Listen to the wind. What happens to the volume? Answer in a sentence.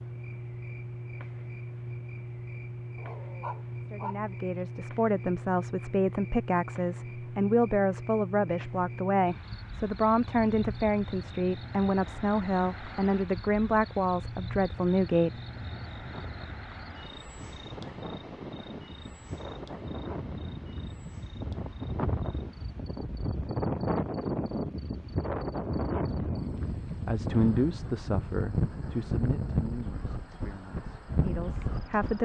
The volume of the wind goes up.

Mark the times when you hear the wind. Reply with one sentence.
You can hear the wind from 15.4 to 32.2 s.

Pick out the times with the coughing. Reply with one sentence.
You can't hear the coughing here.